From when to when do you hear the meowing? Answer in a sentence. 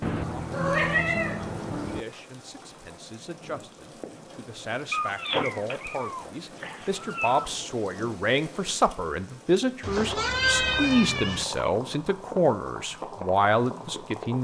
You can hear the meowing from 0.0 to 2.0 s, from 4.9 to 7.5 s and from 9.8 to 11.4 s.